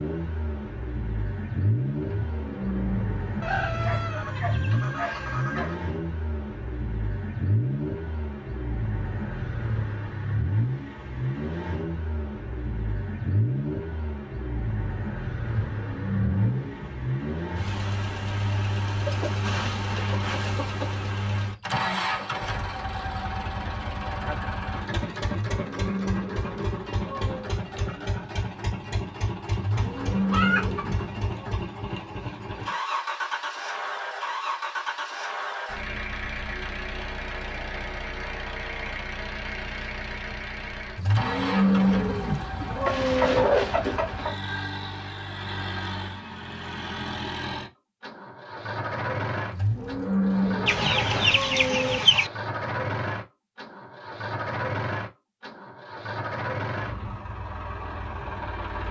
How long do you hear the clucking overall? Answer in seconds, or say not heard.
9 s.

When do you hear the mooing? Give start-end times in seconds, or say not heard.
2.0-3.3, 15.7-17.1, 25.5-27.5, 29.6-31.4, 41.0-43.5, 49.5-52.0.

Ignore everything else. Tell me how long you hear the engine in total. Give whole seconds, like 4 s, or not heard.
59 s.